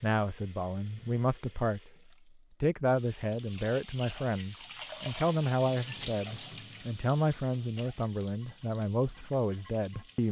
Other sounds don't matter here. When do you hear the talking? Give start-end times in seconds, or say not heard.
0.0-1.9, 2.6-10.2.